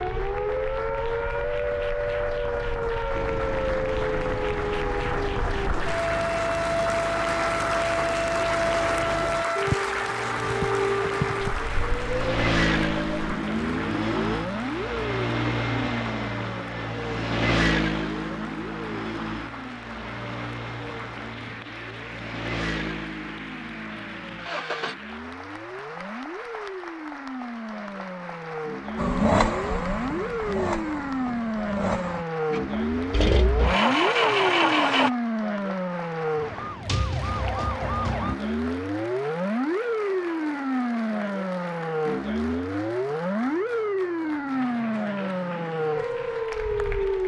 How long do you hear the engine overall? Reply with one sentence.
You can hear the engine for 28 seconds altogether.